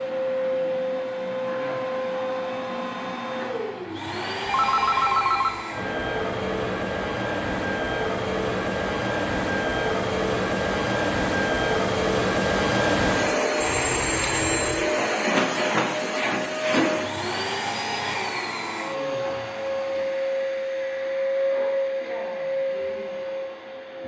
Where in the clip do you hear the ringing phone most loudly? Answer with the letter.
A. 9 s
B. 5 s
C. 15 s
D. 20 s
B.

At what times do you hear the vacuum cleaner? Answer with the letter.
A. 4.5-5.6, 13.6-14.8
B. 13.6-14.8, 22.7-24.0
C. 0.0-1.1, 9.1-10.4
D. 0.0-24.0
D.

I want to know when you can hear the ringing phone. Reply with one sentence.
The ringing phone can be heard from 4.5 to 5.6 s and from 13.6 to 14.8 s.